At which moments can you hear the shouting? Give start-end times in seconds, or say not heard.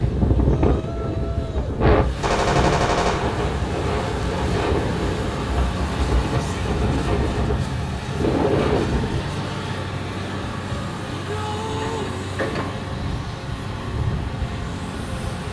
0.5-1.8, 6.3-6.8, 11.1-12.2.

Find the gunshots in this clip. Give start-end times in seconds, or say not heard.
2.2-3.4.